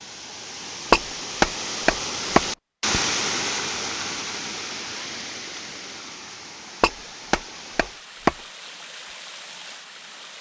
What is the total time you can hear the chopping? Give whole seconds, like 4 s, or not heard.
3 s.